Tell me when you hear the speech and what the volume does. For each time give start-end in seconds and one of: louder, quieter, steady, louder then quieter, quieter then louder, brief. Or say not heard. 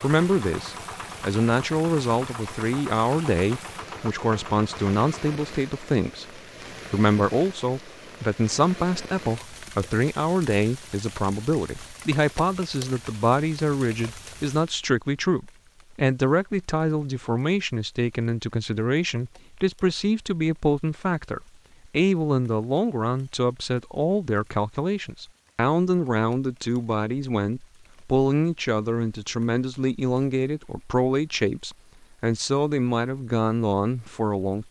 0.0-34.6 steady.